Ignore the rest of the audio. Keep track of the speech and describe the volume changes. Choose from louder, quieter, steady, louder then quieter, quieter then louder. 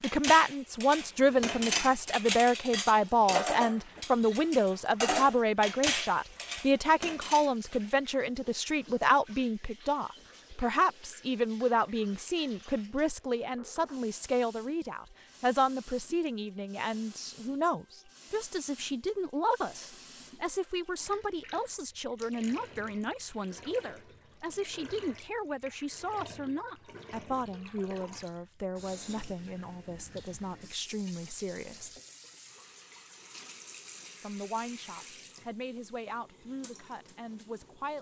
quieter.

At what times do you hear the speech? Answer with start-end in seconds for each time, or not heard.
0.0-32.0, 34.2-37.9.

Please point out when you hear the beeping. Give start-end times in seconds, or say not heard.
not heard.